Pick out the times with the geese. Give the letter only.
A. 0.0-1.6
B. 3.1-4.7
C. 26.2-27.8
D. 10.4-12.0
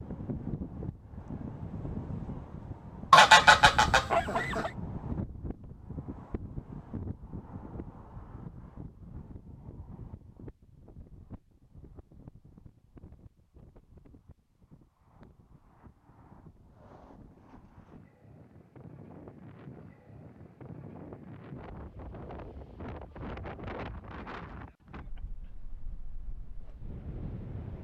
B.